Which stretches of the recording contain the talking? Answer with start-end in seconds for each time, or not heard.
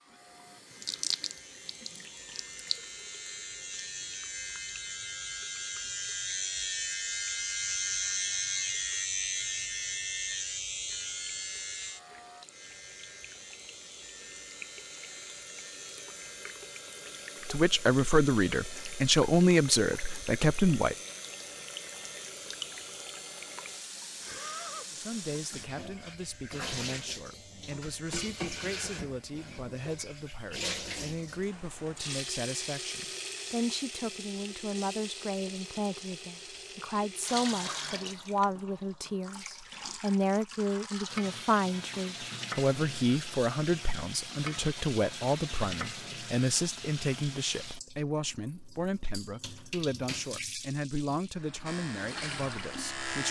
17.4-20.9, 24.9-53.2.